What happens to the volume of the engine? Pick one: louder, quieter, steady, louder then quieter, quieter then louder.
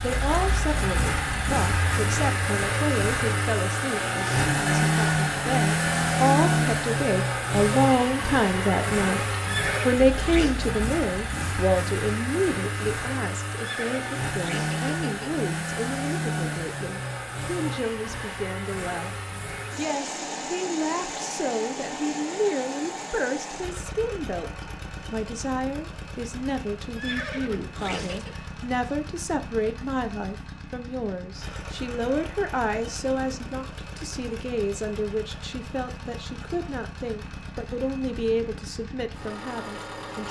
quieter.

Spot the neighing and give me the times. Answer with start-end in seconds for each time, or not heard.
9.4-10.6, 13.6-15.4, 26.9-28.4.